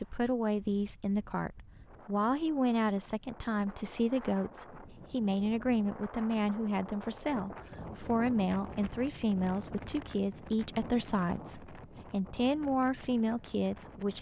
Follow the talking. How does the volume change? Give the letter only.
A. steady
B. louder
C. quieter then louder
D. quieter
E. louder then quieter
A.